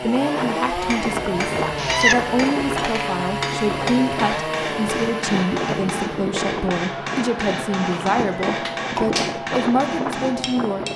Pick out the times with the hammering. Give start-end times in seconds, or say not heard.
0.7-10.9.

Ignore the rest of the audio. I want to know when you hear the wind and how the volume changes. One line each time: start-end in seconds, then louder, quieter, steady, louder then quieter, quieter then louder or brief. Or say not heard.
0.0-10.9 steady.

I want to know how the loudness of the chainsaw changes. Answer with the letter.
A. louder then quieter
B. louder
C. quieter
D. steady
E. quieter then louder
C.